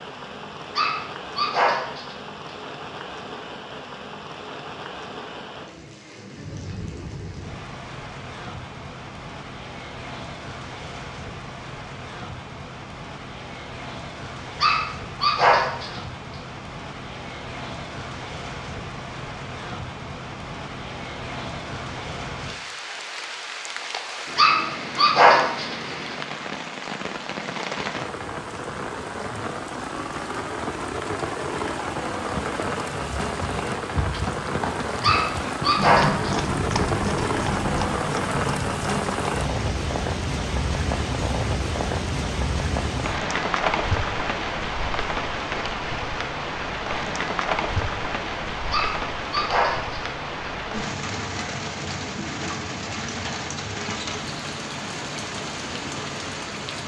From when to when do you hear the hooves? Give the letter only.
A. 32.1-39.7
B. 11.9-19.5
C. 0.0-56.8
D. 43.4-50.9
A.